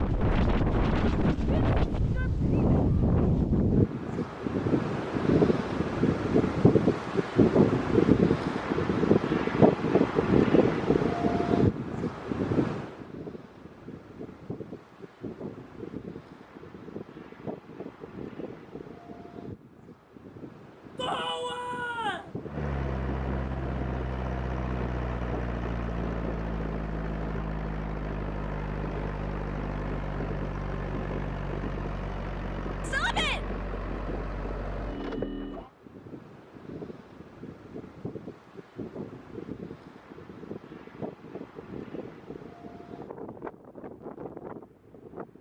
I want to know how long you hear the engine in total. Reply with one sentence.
The engine can be heard for 13 seconds in total.